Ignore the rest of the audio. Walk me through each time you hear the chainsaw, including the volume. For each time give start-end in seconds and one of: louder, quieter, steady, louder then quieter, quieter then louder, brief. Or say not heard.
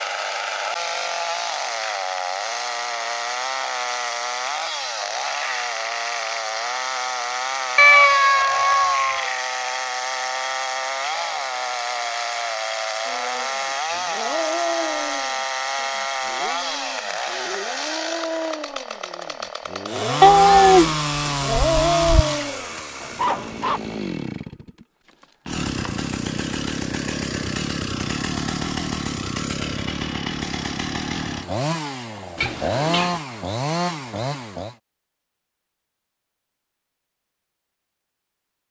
0.0-34.8 steady.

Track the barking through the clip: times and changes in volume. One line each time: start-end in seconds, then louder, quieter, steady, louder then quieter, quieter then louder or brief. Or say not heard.
13.1-23.8 quieter then louder.